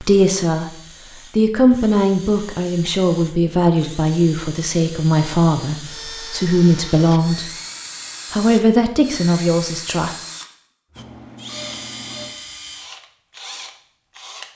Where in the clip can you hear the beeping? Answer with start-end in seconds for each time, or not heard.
10.9-12.3.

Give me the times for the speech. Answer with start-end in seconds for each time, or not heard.
0.0-0.7, 1.4-7.5, 8.3-10.2.